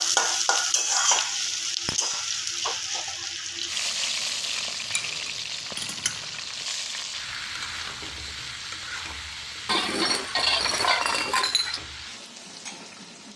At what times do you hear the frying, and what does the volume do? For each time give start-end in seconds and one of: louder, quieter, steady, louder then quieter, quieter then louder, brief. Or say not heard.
0.0-13.3 quieter.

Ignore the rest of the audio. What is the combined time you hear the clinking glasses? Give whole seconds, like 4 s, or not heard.
4 s.